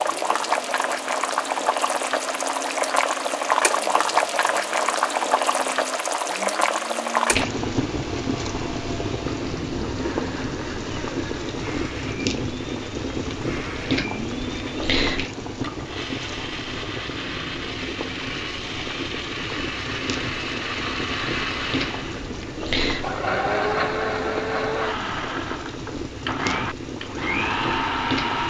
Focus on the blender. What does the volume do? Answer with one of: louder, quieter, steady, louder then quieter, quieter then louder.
louder.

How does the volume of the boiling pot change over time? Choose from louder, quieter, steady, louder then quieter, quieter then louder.
quieter.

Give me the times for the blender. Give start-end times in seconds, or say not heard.
0.0-28.4.